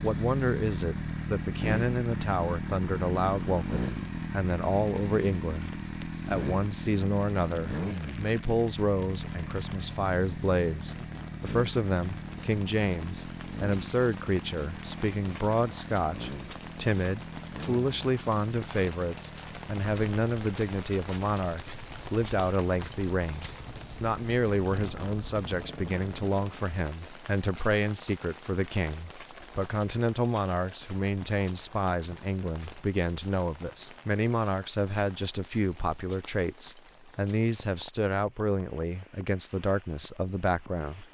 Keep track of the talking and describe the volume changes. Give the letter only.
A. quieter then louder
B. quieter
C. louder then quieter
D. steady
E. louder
D.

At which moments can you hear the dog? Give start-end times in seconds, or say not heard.
not heard.